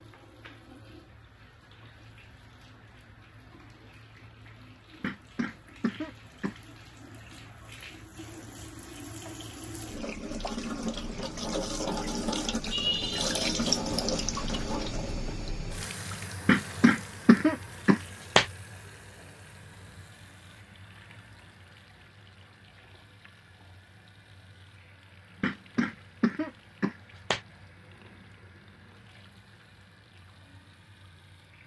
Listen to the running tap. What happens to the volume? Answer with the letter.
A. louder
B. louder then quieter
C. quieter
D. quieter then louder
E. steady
B.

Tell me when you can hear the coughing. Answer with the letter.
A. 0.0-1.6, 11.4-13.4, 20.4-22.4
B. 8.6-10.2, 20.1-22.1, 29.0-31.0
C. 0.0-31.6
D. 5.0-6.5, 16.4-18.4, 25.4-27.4
D.